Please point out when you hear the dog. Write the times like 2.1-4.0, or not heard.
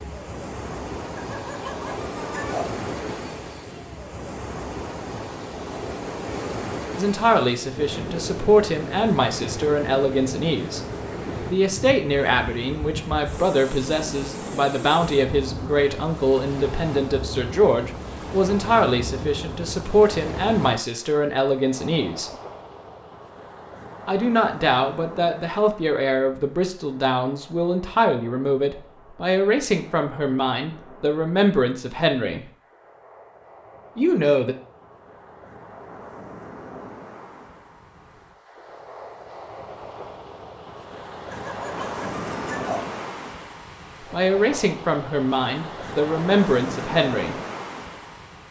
1.1-2.8, 41.3-43.0.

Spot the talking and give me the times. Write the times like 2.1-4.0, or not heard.
7.0-10.8, 11.4-22.3, 24.1-32.4, 34.0-34.5, 44.1-47.4.